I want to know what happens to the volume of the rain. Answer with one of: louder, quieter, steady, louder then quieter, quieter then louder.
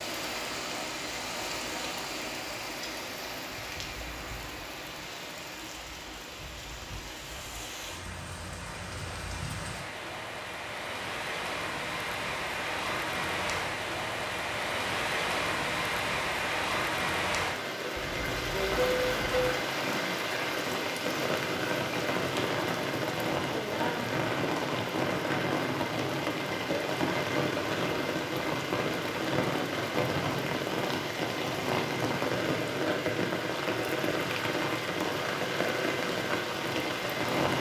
louder.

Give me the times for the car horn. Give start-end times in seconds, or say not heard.
17.9-19.6.